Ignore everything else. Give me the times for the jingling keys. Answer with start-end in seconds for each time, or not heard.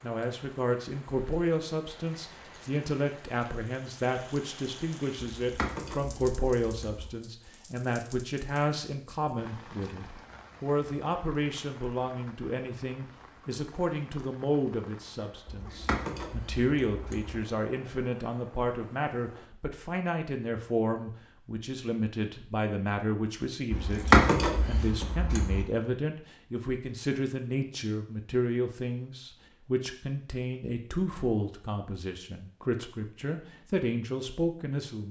5.4-7.1, 15.4-17.4, 23.7-25.6.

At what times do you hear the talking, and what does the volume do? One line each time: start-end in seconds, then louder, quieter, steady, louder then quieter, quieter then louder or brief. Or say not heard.
0.0-35.0 steady.